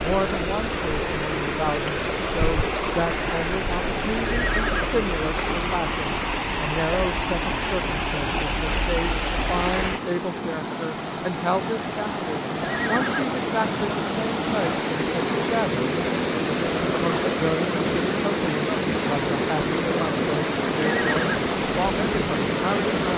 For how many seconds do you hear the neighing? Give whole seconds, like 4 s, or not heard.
2 s.